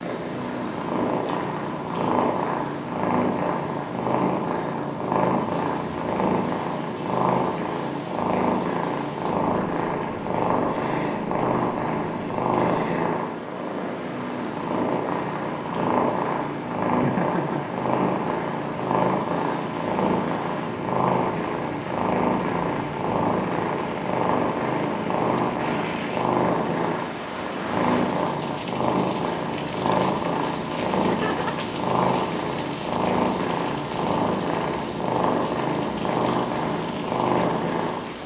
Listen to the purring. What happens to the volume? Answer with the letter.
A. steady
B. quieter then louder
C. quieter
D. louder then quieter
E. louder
A.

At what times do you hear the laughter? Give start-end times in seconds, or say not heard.
17.0-17.6, 31.1-31.6.